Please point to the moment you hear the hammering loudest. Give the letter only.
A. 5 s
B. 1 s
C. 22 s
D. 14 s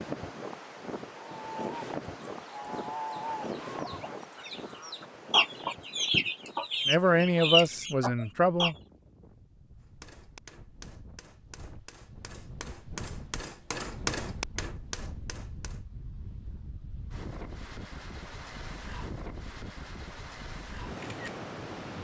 D.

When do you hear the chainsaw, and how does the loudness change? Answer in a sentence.
You can't hear the chainsaw here.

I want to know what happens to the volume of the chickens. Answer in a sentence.
The loudness of the chickens goes up.